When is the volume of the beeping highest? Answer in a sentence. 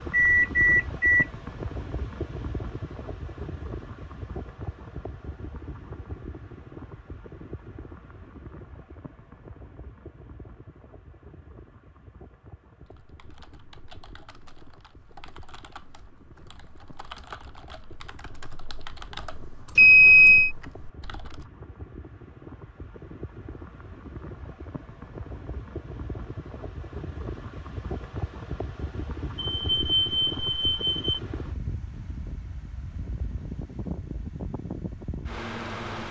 The loudest moment of the beeping is at 20 seconds.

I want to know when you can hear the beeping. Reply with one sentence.
You can hear the beeping from 0.1 to 1.2 s, from 19.8 to 20.5 s and from 29.4 to 31.2 s.